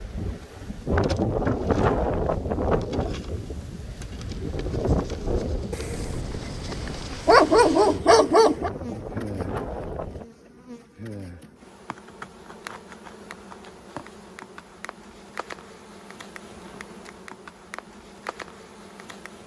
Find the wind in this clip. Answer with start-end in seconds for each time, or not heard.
0.0-10.2.